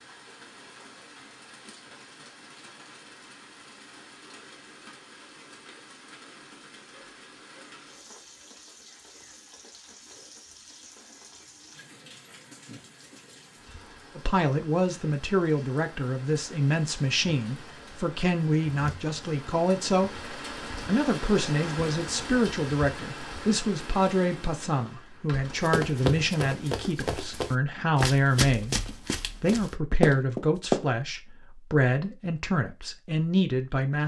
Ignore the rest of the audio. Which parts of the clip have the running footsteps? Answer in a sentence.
You can hear the running footsteps from 25.6 to 30.9 s.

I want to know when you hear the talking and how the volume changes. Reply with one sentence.
You can hear the talking from 14.2 to 34.0 s, at a steady volume.